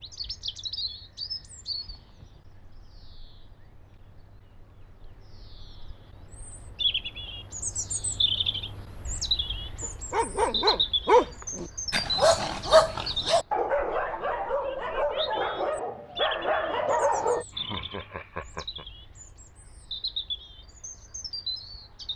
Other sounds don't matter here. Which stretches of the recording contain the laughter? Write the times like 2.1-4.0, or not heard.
17.5-18.9.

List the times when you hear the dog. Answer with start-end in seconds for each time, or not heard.
9.8-17.4.